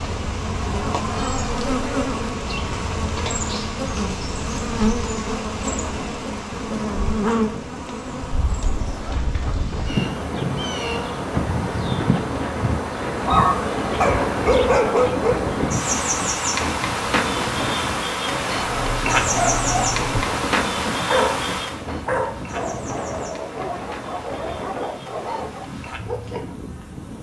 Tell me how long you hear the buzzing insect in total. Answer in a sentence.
The buzzing insect can be heard for 27 seconds in total.